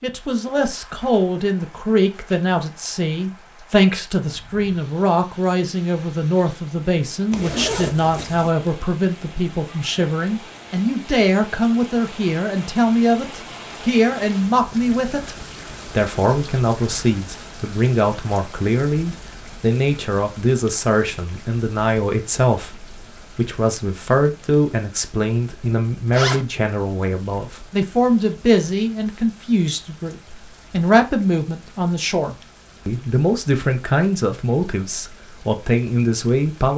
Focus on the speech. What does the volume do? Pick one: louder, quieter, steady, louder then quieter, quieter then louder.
steady.